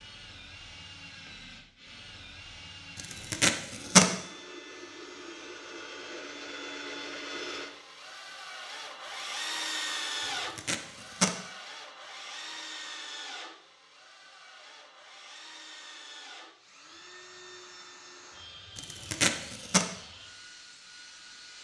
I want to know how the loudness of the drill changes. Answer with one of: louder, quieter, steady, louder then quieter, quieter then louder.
louder then quieter.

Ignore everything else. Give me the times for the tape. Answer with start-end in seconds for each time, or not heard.
3.0-4.1, 10.2-11.3, 18.8-19.9.